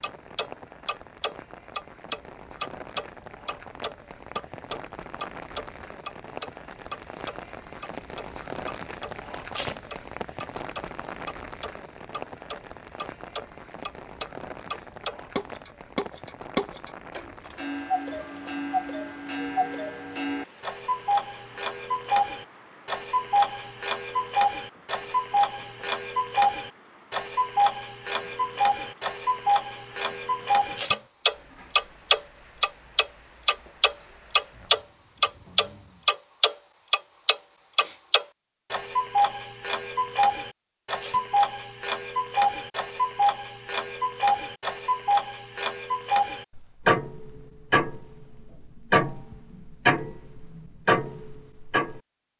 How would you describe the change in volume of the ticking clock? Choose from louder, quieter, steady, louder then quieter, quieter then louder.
louder.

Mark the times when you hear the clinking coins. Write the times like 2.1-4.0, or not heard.
not heard.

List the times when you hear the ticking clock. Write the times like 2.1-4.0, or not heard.
0.0-52.3.